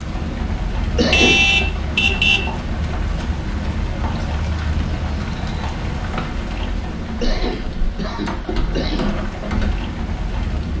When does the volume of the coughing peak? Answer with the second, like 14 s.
1 s.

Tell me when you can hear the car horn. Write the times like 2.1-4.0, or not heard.
1.1-2.5.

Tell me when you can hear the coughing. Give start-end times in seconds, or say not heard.
0.9-1.4, 7.2-9.2.